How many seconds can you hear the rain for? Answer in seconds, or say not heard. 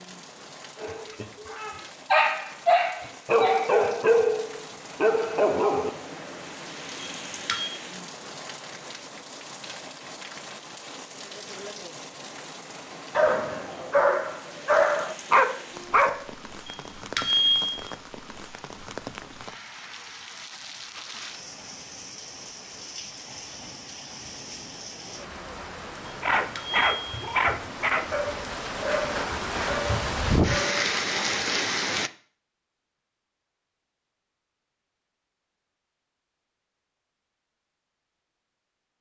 32 s.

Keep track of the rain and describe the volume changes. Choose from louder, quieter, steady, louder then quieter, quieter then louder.
louder.